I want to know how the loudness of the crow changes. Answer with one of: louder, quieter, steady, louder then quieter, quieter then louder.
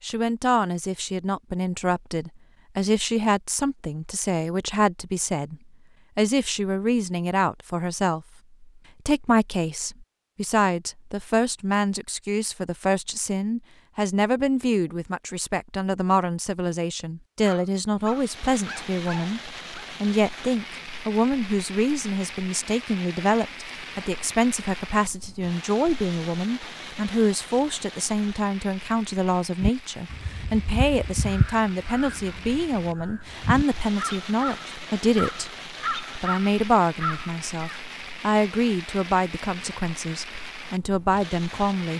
quieter then louder.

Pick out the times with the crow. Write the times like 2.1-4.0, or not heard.
29.6-37.8.